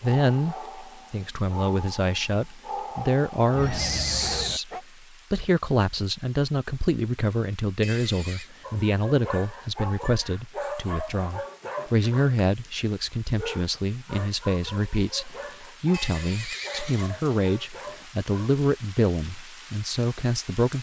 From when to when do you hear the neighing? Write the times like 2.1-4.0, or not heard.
3.5-4.6, 7.8-8.5, 15.9-17.1.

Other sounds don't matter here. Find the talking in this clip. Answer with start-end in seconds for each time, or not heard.
0.0-4.7, 5.3-20.7.